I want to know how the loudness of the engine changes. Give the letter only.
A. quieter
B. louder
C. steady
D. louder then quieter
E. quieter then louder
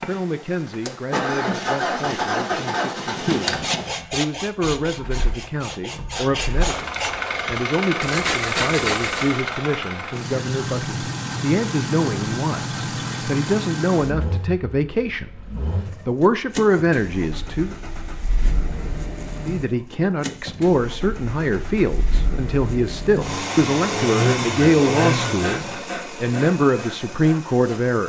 E.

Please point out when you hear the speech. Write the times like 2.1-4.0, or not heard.
0.0-15.4, 16.1-17.8, 19.4-28.0.